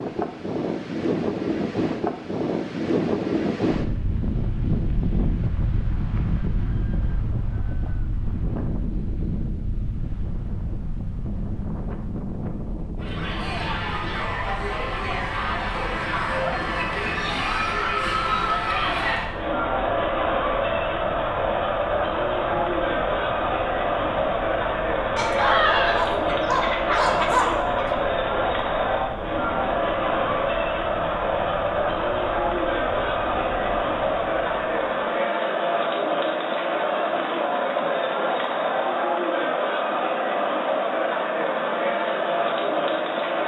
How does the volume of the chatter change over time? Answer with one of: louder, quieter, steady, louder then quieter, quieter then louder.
steady.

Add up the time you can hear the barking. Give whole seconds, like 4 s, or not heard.
3 s.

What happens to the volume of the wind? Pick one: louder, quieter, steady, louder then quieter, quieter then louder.
quieter.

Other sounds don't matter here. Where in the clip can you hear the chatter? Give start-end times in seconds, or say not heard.
12.9-43.4.